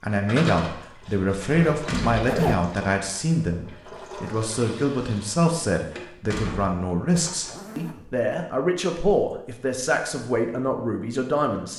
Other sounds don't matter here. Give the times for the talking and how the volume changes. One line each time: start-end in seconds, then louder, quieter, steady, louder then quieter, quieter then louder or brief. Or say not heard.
0.0-11.7 steady.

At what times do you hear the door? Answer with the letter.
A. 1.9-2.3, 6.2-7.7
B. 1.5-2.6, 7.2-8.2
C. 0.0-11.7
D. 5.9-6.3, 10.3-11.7
A.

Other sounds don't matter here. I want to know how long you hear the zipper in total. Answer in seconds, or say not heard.
2 s.